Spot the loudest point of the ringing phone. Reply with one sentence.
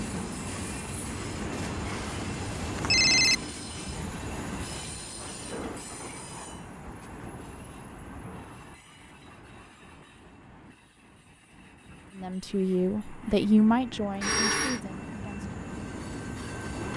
The volume of the ringing phone peaks at 3 seconds.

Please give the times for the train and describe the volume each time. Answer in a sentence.
The train can be heard from 0.0 to 16.9 s, getting quieter then louder.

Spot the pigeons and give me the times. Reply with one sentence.
You can't hear the pigeons here.